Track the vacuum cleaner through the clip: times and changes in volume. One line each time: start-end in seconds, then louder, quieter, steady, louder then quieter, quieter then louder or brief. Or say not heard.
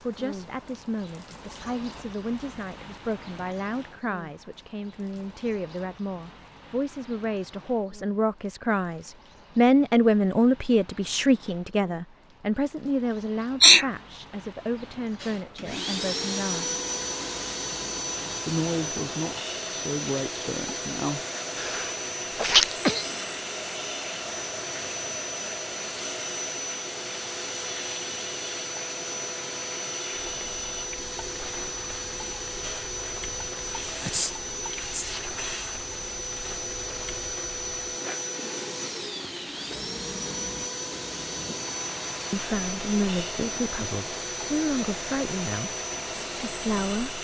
15.2-47.1 steady.